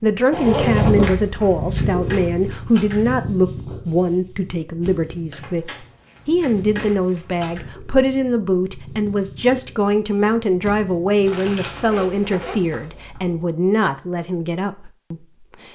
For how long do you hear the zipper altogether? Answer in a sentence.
You can hear the zipper for 2 seconds altogether.